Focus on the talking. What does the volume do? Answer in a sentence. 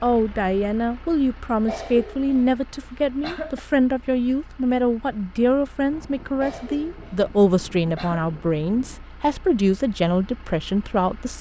The volume of the talking stays about the same.